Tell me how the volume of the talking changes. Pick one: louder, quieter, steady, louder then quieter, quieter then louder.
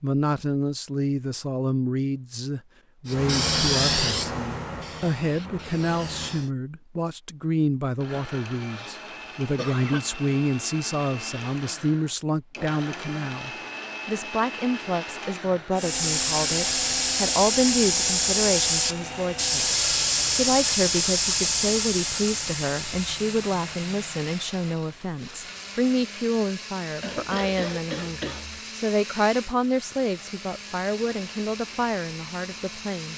steady.